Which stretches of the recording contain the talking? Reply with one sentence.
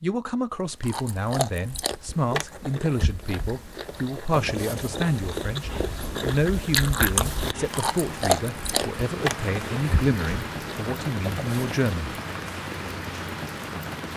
You can hear the talking from 0.0 to 12.2 s.